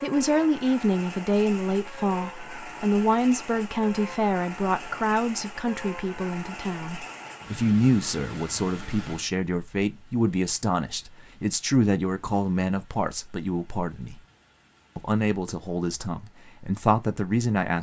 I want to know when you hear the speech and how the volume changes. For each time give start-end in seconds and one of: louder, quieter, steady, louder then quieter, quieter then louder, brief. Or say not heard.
0.0-14.2 steady
14.9-17.7 brief.